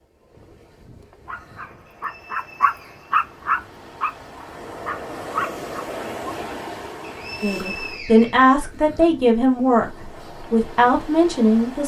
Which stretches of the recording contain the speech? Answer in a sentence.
The speech can be heard from 7.4 to 11.8 s.